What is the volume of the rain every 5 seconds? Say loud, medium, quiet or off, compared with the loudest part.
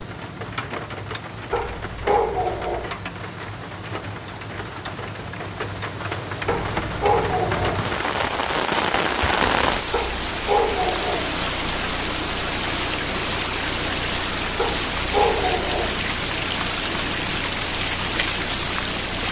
medium, loud, loud, loud.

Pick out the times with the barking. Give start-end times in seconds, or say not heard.
1.5-2.9, 6.5-7.8, 9.9-11.3, 14.6-15.9.